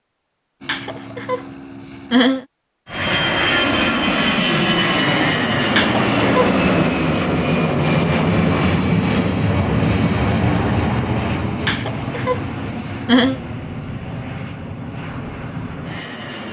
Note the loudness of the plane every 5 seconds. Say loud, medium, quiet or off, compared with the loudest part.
loud, loud, medium, quiet.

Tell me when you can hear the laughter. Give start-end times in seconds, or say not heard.
0.6-2.5, 5.7-6.7, 11.6-13.4.